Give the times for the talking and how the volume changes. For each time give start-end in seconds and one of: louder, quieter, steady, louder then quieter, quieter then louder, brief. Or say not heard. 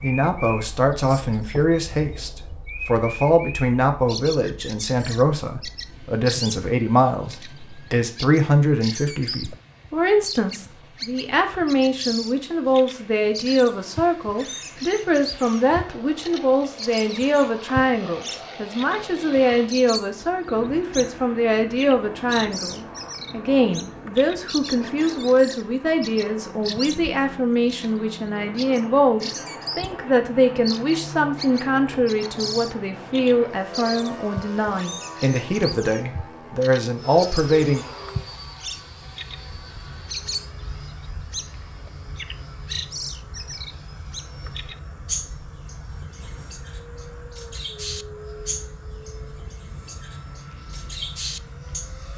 0.0-37.9 steady.